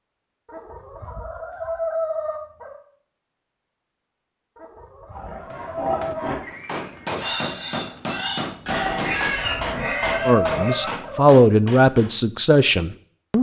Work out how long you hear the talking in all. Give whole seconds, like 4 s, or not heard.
3 s.